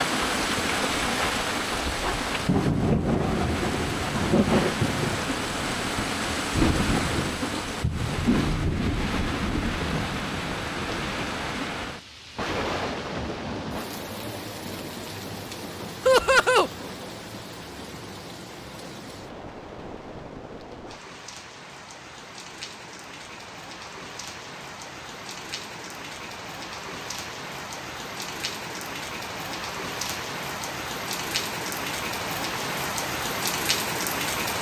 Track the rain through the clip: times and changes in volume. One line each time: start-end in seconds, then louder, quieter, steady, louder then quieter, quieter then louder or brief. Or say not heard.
0.0-34.5 quieter then louder.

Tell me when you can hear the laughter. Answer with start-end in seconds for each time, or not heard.
16.1-16.7.